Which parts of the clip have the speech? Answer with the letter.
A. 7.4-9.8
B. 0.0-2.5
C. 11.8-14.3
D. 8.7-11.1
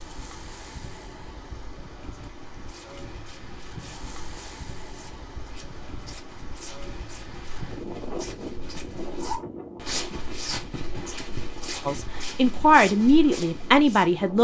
C.